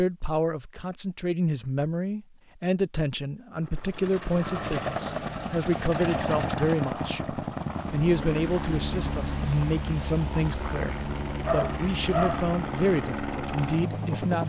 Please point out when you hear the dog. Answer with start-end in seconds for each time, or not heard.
11.4-12.4.